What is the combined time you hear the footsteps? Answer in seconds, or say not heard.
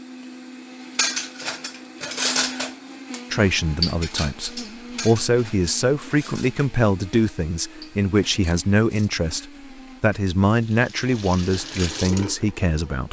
not heard.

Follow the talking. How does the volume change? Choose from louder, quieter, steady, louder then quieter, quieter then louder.
steady.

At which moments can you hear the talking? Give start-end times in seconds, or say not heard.
3.3-13.0.